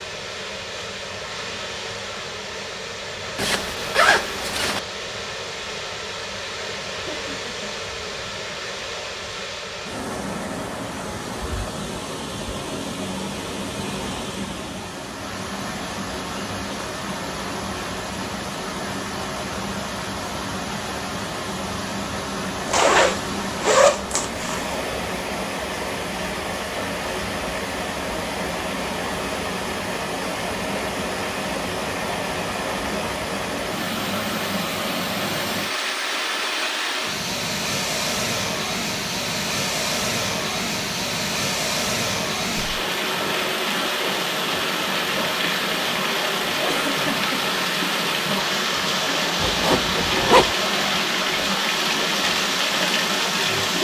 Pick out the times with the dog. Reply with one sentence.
You can't hear the dog here.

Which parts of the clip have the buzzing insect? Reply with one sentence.
You can't hear the buzzing insect here.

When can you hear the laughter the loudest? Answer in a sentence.
The volume of the laughter peaks at 47 seconds.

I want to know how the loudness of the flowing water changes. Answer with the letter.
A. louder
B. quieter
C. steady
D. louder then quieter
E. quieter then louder
A.